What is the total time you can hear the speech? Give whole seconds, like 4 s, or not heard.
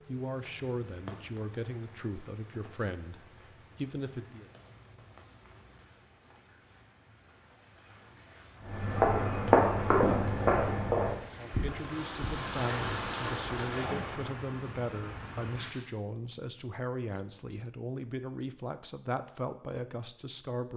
14 s.